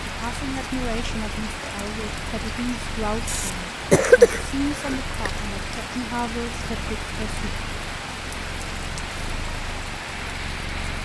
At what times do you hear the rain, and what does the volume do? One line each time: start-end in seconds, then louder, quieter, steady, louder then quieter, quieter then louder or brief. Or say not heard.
0.0-11.0 steady.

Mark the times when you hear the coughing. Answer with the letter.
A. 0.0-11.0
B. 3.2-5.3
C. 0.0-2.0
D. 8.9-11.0
B.